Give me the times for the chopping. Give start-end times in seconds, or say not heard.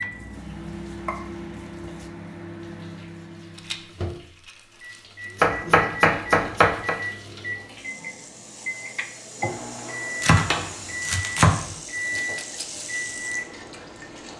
0.1-2.1, 5.4-7.0, 10.2-11.8.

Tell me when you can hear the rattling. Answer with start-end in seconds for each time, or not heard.
3.5-5.4, 12.2-12.8.